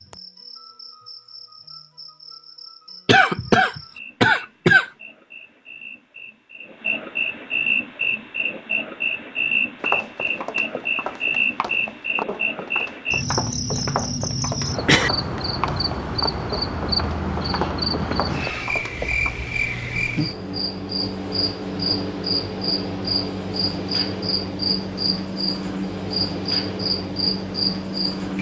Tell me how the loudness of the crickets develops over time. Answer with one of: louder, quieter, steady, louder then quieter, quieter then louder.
louder.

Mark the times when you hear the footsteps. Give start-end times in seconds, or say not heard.
9.8-19.4.